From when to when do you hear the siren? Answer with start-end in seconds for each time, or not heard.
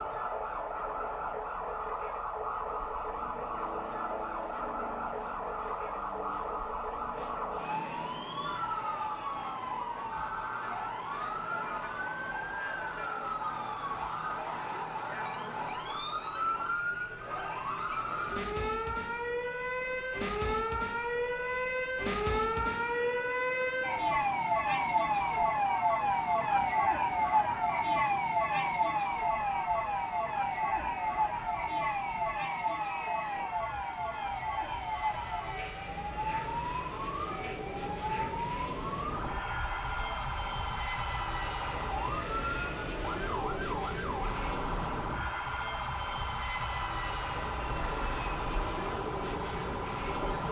0.0-50.4.